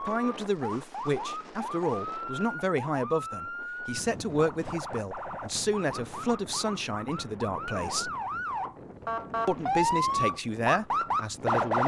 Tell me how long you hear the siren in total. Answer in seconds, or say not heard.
12 s.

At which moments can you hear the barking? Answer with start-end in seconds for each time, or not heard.
not heard.